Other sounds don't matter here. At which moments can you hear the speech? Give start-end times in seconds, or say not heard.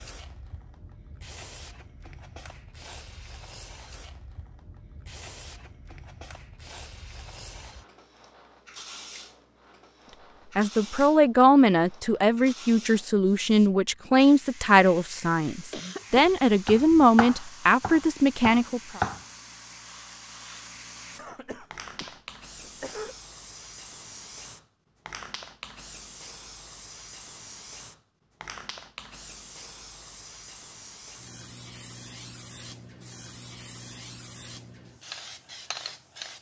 10.6-19.0.